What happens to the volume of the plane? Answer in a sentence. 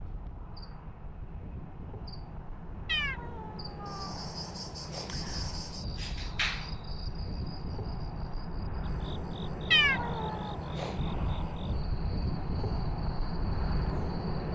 The volume of the plane goes up.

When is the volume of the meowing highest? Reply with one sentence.
The volume of the meowing peaks at 10 seconds.